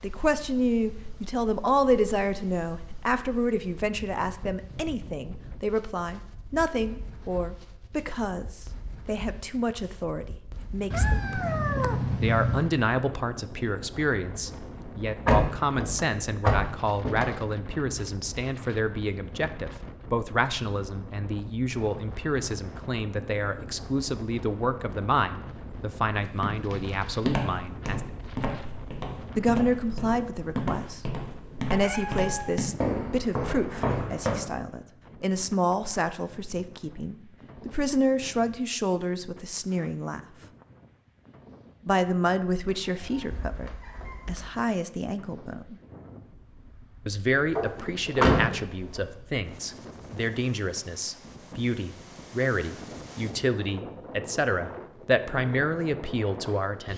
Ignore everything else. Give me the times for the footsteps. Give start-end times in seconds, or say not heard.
26.1-34.4.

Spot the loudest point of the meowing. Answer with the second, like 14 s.
12 s.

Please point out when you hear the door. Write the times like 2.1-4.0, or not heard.
15.2-17.2, 47.5-49.0.